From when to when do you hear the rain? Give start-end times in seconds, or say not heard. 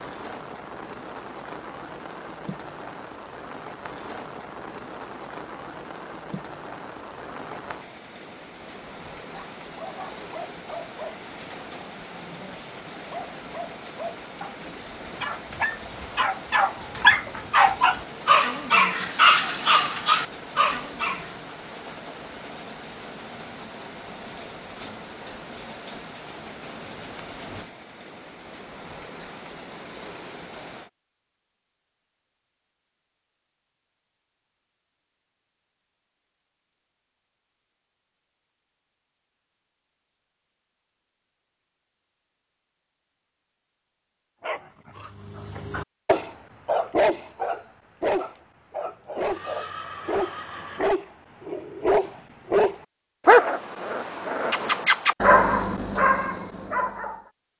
0.0-30.9.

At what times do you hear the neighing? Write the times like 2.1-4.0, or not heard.
49.2-50.9.